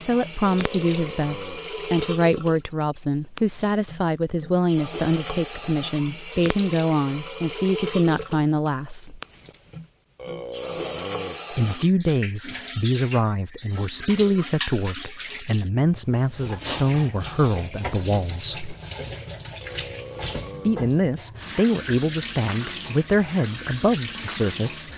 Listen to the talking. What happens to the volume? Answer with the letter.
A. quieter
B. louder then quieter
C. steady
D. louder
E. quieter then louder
C.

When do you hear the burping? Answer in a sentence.
You can hear the burping from 0.5 to 1.6 s, from 10.2 to 11.4 s and from 19.6 to 20.8 s.